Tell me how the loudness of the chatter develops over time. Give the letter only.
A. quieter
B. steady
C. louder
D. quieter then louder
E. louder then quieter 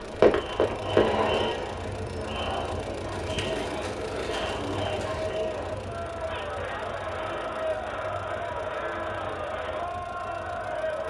B.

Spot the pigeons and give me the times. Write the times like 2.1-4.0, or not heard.
3.1-5.3.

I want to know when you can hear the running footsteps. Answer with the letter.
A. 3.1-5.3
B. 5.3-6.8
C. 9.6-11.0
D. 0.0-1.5
D.